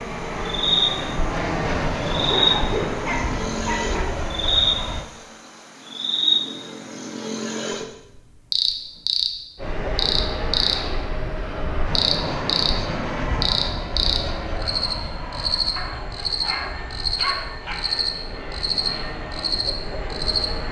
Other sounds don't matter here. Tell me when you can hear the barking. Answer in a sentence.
The barking can be heard from 2.3 to 4.2 s and from 15.8 to 17.8 s.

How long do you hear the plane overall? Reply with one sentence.
You can hear the plane for 16 seconds altogether.